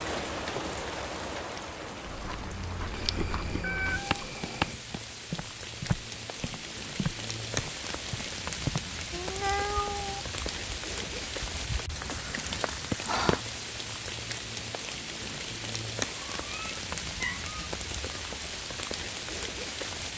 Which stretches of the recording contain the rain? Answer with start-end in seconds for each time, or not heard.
0.0-20.1.